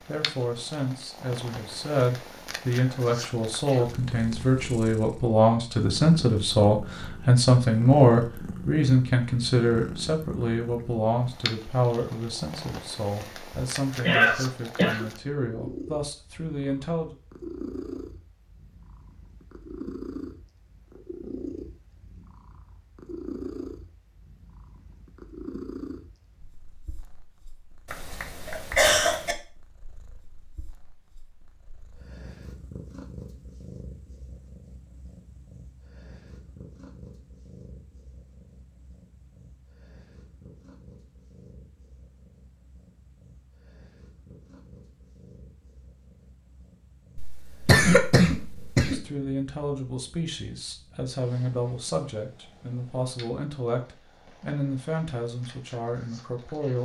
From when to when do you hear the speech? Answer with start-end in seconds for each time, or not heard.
0.0-17.1, 48.9-56.8.